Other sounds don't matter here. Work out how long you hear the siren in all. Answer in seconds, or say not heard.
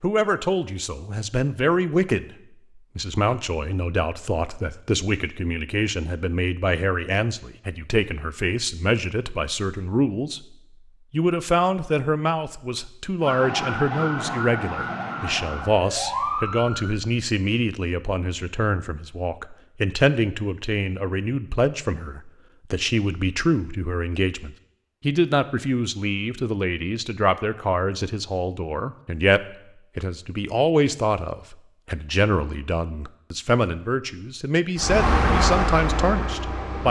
4 s.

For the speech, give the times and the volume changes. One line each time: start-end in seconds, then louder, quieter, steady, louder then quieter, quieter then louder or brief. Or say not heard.
0.0-2.2 brief
3.0-36.8 steady.